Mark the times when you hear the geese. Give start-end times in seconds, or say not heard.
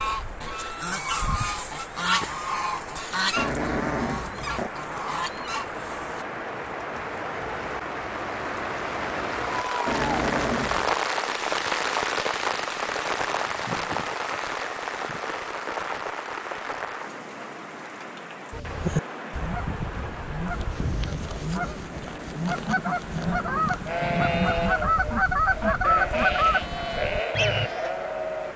0.0-6.2, 18.5-27.7.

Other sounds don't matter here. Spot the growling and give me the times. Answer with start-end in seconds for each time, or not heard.
3.4-4.7, 9.8-10.9, 21.9-23.8.